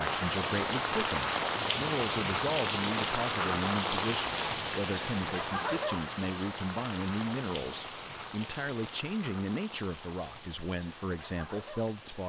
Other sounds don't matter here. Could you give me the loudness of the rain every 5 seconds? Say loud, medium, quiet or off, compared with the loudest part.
loud, medium, quiet.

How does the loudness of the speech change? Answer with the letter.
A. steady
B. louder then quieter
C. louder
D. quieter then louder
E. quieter
A.